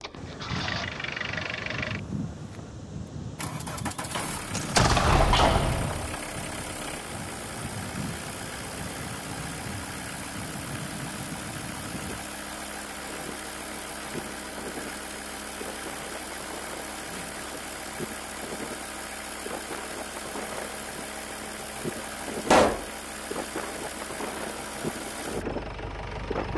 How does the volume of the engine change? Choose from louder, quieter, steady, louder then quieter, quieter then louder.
steady.